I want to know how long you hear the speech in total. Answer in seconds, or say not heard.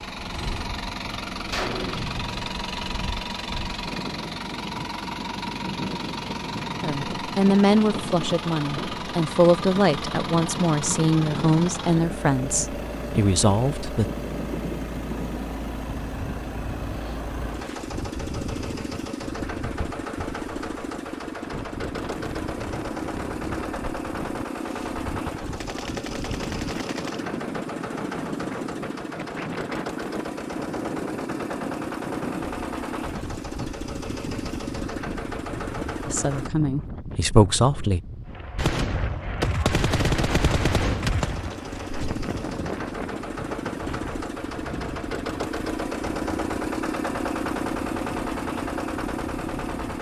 9 s.